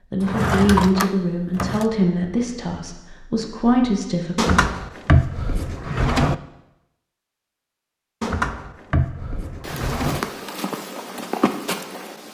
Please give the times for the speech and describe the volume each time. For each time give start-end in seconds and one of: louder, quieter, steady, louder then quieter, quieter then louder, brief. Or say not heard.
0.1-4.7 quieter then louder.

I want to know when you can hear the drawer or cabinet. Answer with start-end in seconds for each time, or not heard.
0.2-1.9, 4.3-6.3, 8.2-10.2.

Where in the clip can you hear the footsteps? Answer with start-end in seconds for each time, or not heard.
9.6-12.2.